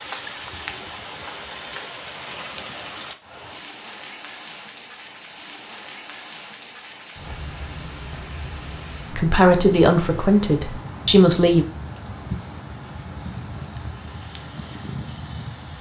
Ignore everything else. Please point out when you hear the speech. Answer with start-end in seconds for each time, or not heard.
9.1-11.7.